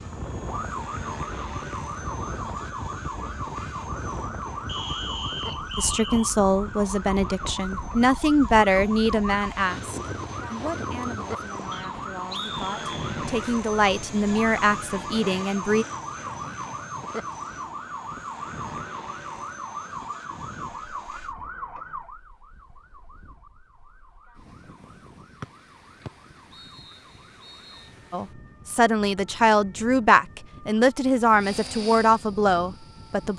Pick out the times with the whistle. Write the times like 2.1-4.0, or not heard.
4.7-6.3, 11.7-13.1, 26.1-27.9.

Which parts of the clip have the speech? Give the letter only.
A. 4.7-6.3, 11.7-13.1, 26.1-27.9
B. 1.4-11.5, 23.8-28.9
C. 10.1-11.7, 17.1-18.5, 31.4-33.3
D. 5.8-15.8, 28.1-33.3
D.